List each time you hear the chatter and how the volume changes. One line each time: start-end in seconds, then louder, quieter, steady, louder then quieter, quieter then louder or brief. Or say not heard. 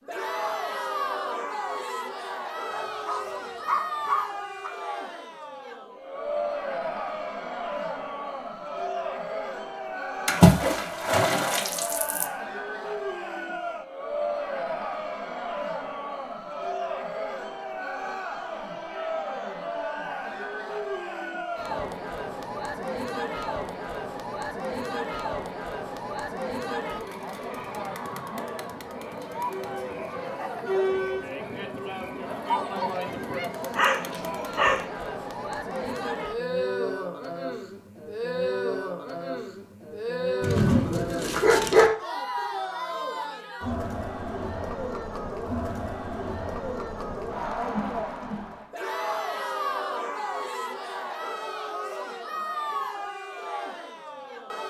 0.0-54.6 steady.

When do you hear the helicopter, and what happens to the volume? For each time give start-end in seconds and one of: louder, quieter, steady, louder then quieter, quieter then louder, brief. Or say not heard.
not heard.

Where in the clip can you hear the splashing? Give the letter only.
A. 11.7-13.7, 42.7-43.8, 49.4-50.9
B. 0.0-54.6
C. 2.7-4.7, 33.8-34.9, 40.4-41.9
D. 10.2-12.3
D.